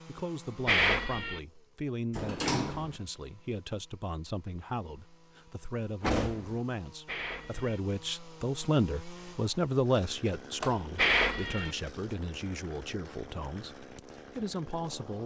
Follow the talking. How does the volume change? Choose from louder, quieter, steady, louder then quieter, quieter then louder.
louder then quieter.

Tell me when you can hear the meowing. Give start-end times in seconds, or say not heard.
0.7-1.4, 7.0-7.8, 10.9-11.7.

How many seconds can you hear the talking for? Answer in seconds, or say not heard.
15 s.